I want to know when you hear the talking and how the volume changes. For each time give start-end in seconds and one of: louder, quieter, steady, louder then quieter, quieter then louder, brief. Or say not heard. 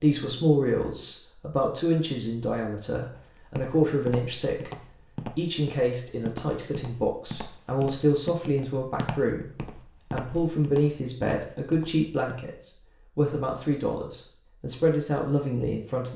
0.0-16.1 steady.